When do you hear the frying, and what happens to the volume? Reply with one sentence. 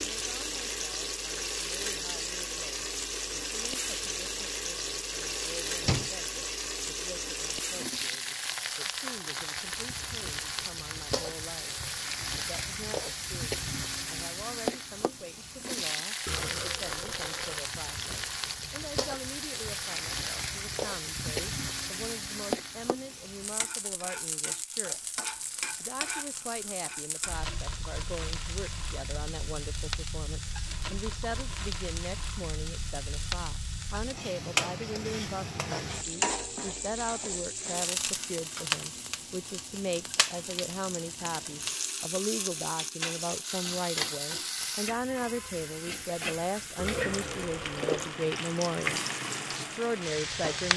The frying can be heard from 0.0 to 50.7 s, at a steady volume.